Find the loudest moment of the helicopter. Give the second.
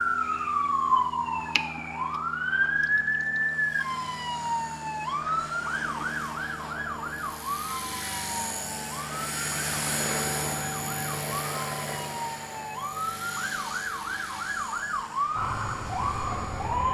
10 s.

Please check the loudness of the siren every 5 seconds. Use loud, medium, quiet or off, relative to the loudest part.
loud, medium, medium, loud.